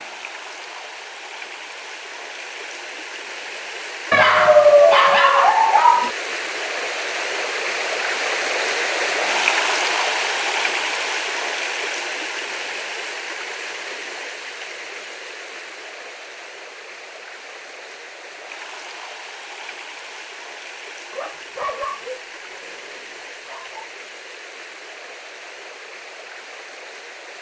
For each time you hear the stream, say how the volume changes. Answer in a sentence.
You can hear the stream from 0.0 to 27.3 s, getting louder then quieter.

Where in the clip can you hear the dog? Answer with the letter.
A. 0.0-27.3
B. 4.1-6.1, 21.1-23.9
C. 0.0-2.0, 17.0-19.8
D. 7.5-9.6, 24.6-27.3
B.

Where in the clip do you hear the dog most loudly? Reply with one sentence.
The volume of the dog peaks at 5 seconds.